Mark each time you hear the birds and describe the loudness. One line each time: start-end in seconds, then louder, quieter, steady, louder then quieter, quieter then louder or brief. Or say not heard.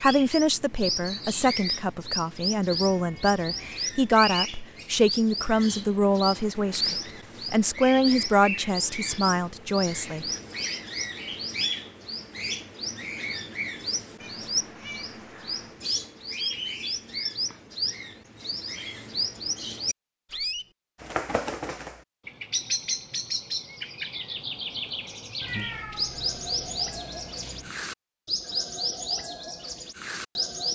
0.0-30.7 steady.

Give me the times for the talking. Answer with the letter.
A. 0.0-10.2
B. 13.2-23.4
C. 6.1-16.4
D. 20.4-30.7
A.